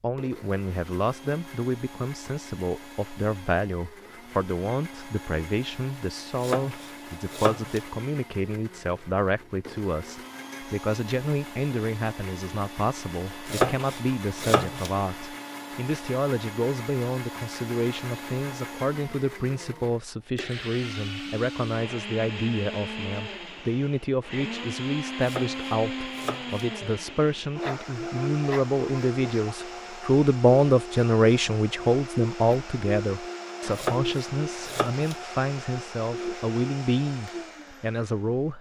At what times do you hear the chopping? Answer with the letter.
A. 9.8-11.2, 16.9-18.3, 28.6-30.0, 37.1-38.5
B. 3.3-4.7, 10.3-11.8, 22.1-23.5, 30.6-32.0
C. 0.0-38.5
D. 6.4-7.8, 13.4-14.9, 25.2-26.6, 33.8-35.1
D.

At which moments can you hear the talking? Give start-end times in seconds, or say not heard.
0.0-38.5.